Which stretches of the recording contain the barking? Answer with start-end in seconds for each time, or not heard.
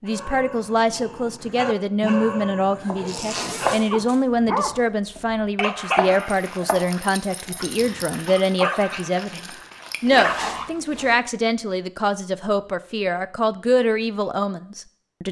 0.1-10.7.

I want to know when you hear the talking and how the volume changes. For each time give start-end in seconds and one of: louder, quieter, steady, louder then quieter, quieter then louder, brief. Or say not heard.
0.0-15.2 steady.